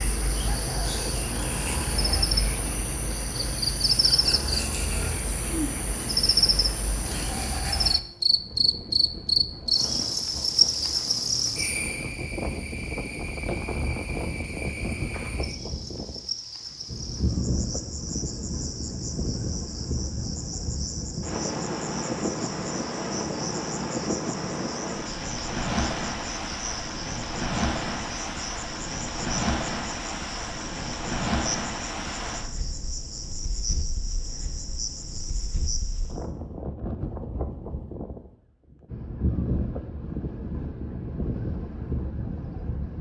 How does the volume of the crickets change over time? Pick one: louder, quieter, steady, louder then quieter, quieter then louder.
quieter.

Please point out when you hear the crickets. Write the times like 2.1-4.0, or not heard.
0.0-36.2.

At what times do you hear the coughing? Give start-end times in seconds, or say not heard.
not heard.